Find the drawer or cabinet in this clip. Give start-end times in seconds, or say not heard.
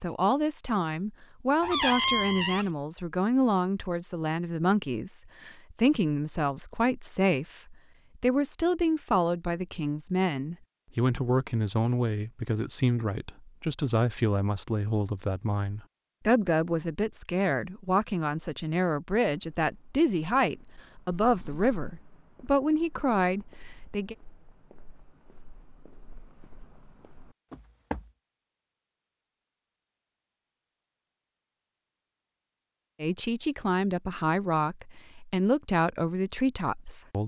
1.6-2.6, 21.1-21.8.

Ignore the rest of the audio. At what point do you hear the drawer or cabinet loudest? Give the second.
2 s.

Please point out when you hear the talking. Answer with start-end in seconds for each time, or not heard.
0.0-24.1, 33.0-37.2.